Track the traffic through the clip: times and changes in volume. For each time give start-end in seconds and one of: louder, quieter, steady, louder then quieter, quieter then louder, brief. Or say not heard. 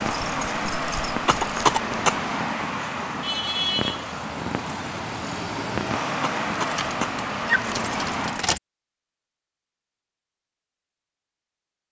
0.0-8.6 steady.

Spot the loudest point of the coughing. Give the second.
2 s.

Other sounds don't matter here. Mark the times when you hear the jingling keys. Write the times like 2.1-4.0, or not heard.
0.1-1.8, 6.8-8.6.